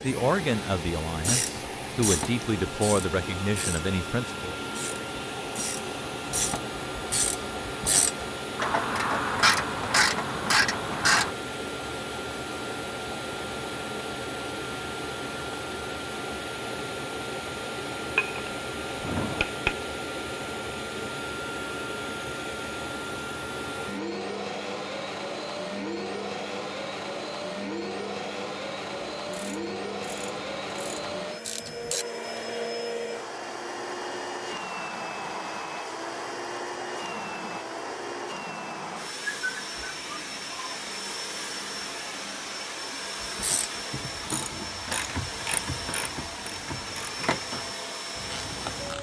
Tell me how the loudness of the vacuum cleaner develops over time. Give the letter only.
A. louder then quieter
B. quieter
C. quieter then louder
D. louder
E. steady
E.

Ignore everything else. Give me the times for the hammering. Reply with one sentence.
The hammering can be heard from 18.1 to 19.8 s.